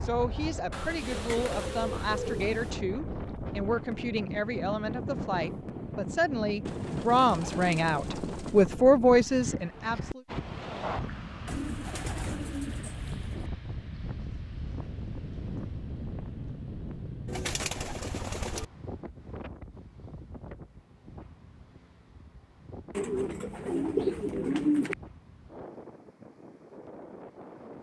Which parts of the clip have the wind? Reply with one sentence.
You can hear the wind from 0.0 to 27.7 s.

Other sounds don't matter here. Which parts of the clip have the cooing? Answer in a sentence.
You can hear the cooing from 0.7 to 2.8 s, from 6.7 to 8.7 s, from 11.4 to 13.5 s, from 17.2 to 18.6 s and from 22.9 to 24.9 s.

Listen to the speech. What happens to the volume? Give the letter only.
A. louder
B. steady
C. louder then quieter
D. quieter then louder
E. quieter
A.